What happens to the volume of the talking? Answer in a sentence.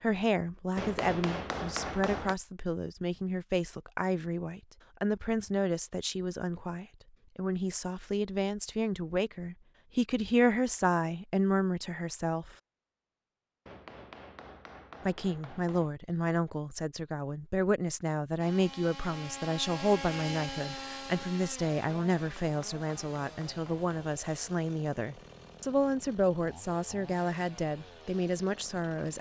The loudness of the talking stays about the same.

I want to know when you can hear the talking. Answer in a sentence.
The talking can be heard from 0.0 to 12.6 s and from 15.1 to 29.1 s.